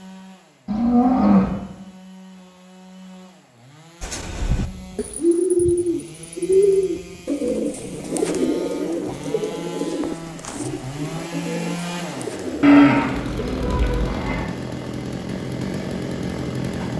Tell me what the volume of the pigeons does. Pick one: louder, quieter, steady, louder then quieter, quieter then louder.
quieter.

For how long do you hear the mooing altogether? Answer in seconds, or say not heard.
3 s.